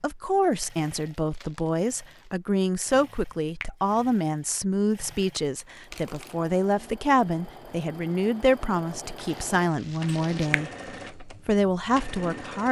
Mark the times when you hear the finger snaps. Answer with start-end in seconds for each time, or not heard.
10.1-10.7.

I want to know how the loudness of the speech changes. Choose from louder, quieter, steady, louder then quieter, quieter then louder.
steady.